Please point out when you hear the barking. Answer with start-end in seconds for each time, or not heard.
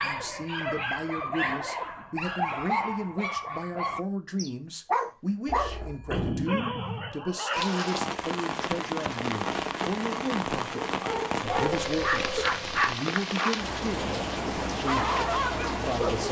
0.0-8.1, 10.9-16.2.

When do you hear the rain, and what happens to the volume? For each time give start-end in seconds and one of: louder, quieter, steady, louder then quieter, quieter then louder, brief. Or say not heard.
7.5-16.2 steady.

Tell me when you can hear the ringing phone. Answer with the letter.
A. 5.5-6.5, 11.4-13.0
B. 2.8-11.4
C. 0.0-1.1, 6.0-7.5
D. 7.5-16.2
A.